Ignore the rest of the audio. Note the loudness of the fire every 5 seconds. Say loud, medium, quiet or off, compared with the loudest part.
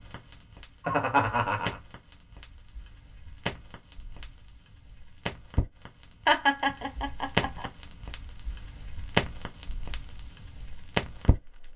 medium, loud, loud.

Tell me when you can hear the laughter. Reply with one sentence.
You can hear the laughter from 0.8 to 1.8 s and from 6.2 to 7.7 s.